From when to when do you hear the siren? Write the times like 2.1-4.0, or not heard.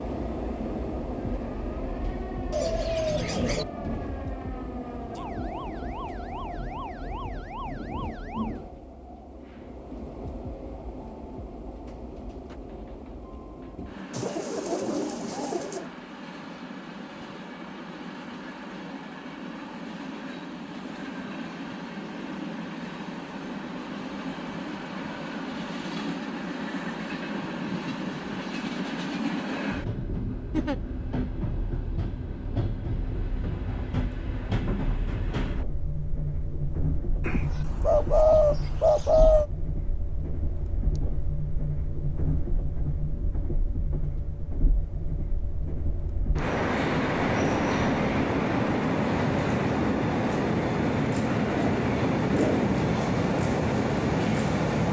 0.0-8.6.